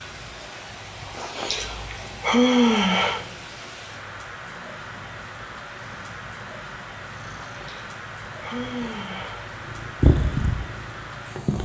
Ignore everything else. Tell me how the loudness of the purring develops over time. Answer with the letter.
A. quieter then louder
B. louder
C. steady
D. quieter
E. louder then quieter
B.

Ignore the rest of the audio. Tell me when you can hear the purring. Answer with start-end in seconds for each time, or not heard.
0.0-11.6.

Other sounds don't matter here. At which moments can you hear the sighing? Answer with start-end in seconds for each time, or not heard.
1.1-3.2, 7.5-9.5.